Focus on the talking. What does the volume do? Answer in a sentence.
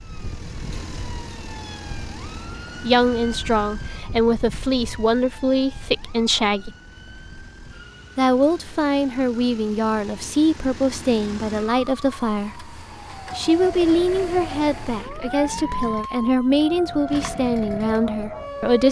The volume of the talking stays about the same.